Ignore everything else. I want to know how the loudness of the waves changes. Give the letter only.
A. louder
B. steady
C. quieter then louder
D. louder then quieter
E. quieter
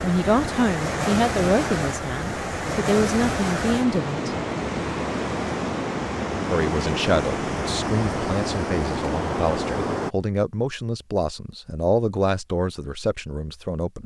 B.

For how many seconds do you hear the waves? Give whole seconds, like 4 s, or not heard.
10 s.